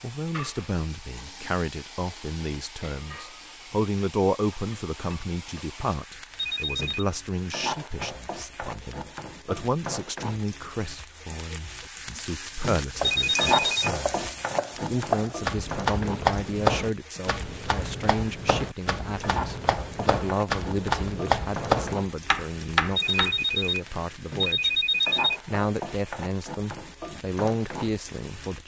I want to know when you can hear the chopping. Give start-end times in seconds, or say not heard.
12.8-23.4.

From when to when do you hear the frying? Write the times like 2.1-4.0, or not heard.
0.0-28.6.